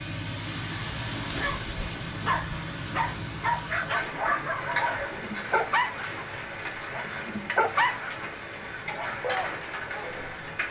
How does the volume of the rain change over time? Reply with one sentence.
The volume of the rain stays about the same.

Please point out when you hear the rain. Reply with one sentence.
The rain can be heard from 0.0 to 10.6 s.